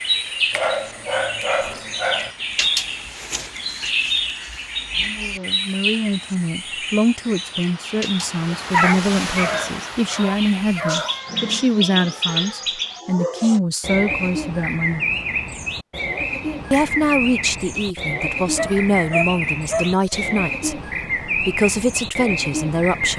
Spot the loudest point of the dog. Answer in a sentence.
The loudest moment of the dog is at 9 seconds.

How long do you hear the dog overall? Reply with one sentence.
The dog can be heard for 6 seconds in total.